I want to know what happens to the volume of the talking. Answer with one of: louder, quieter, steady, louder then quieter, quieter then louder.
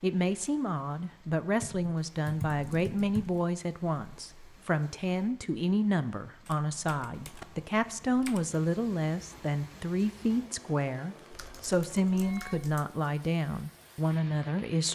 steady.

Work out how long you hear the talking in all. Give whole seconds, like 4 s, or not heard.
15 s.